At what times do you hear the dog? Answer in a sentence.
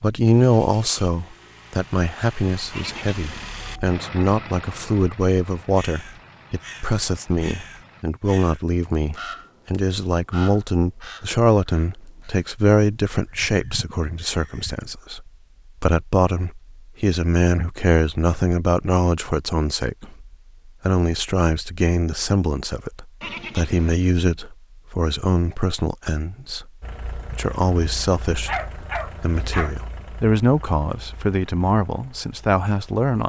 You can hear the dog from 28.4 to 29.8 s.